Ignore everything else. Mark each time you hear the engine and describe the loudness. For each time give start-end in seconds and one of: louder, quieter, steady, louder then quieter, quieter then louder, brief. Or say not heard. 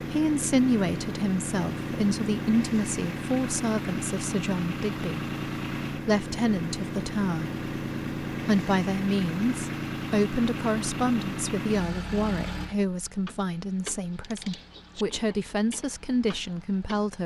0.0-17.2 quieter.